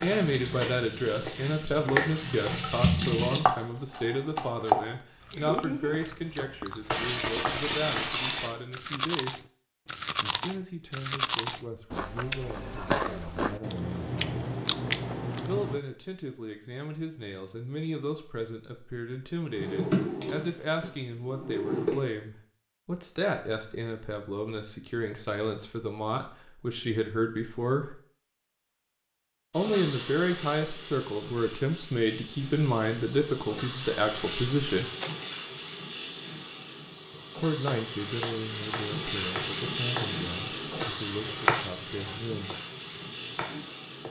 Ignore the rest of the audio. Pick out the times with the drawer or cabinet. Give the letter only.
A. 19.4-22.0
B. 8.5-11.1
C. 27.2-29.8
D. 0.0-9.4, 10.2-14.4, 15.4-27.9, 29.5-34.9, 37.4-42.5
A.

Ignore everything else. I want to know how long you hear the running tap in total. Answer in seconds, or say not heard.
18 s.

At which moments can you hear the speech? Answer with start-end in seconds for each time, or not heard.
0.0-9.4, 10.2-14.4, 15.4-27.9, 29.5-34.9, 37.4-42.5.